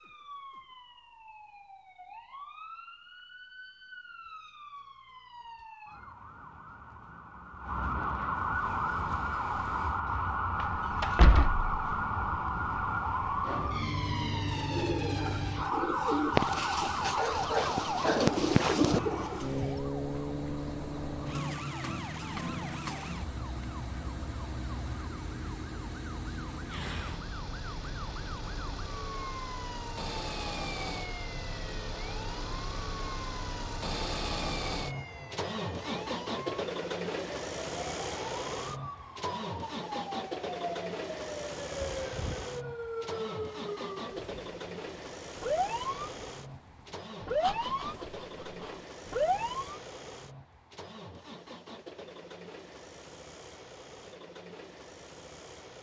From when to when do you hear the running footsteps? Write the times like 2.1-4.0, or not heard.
not heard.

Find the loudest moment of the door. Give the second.
11 s.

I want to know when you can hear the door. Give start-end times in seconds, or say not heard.
10.6-11.7, 41.8-42.5.